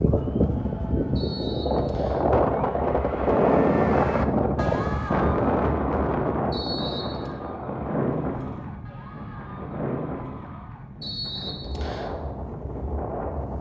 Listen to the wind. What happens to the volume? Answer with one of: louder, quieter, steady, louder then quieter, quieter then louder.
quieter.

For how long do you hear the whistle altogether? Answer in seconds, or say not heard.
3 s.